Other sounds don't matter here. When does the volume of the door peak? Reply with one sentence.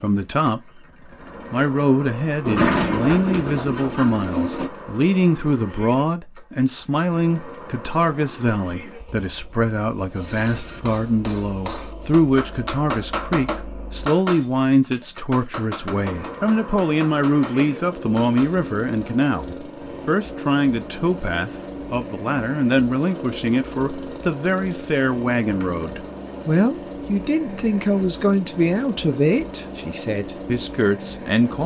The volume of the door peaks at 3 seconds.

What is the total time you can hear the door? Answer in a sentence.
You can hear the door for 3 seconds altogether.